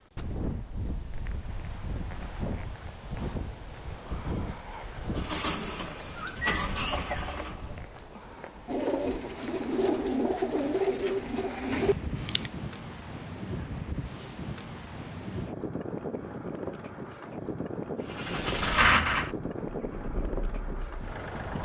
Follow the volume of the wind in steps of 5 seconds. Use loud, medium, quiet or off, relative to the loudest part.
loud, medium, loud, loud, loud.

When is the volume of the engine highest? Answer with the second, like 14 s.
19 s.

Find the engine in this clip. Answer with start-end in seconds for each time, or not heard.
5.2-7.8, 18.1-21.6.